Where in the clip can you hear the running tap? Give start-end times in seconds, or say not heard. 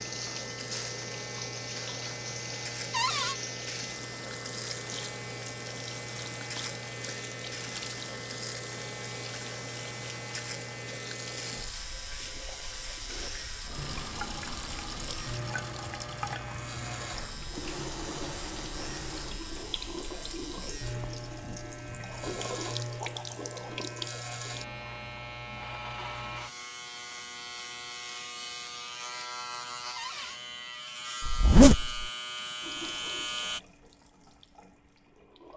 0.0-24.6, 32.6-35.5.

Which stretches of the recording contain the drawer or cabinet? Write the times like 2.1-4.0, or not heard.
2.9-3.4, 29.9-30.4.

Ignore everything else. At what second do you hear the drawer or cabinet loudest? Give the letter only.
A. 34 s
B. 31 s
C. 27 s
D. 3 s
D.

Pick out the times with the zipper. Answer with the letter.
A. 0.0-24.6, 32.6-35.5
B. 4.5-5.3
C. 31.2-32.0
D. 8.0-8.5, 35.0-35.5
C.